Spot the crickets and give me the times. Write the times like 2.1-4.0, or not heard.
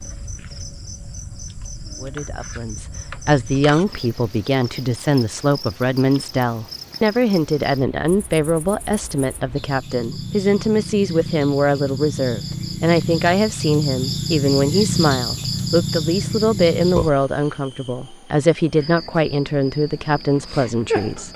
0.0-21.3.